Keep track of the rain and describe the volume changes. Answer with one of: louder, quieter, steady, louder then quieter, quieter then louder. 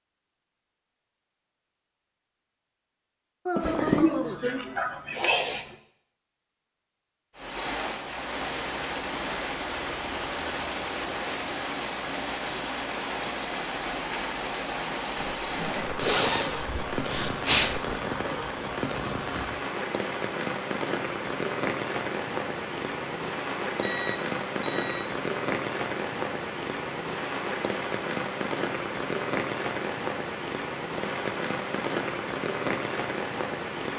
steady.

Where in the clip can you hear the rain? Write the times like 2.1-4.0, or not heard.
7.3-33.9.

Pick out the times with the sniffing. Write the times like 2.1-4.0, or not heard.
3.5-5.7, 15.9-17.9, 27.1-27.7.